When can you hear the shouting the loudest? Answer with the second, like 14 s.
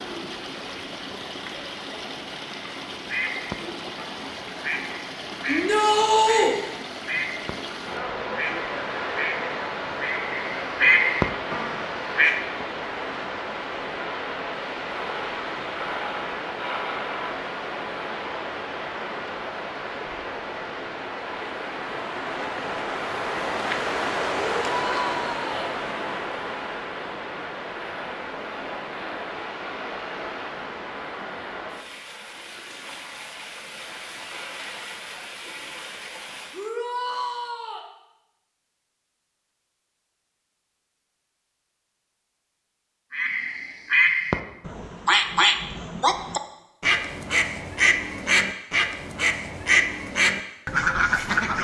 6 s.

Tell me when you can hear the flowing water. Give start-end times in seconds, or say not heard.
0.0-36.7.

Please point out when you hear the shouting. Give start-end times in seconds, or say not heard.
5.5-6.5, 24.6-25.6, 36.5-37.9.